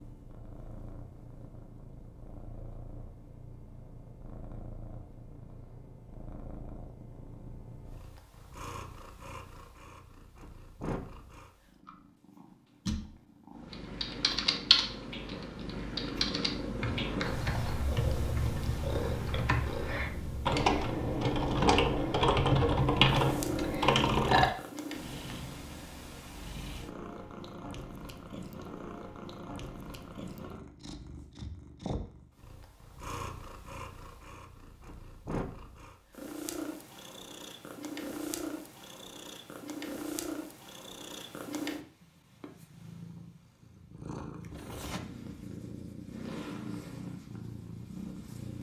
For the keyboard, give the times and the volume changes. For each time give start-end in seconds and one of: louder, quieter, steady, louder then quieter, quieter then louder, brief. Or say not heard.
13.7-24.4 quieter then louder.